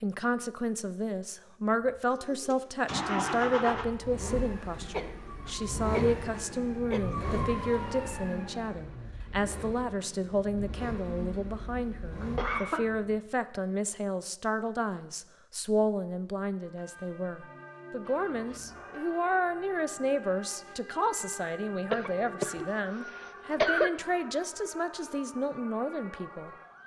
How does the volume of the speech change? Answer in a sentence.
The loudness of the speech stays about the same.